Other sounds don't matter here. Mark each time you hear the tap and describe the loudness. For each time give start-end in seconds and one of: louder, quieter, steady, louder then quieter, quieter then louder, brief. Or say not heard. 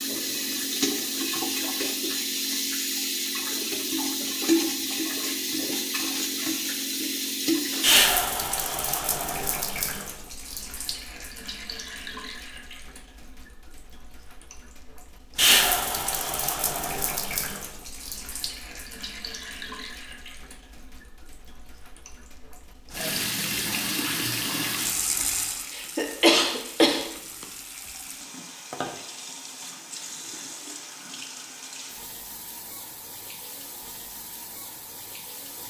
0.0-35.6 quieter.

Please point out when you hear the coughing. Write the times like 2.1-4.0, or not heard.
25.8-27.4.